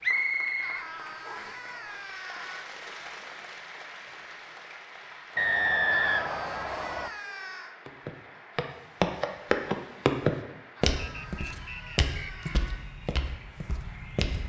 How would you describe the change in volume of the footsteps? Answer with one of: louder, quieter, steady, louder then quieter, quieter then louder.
quieter.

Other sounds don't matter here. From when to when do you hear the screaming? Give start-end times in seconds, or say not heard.
0.6-2.6, 5.9-7.8, 10.8-12.8.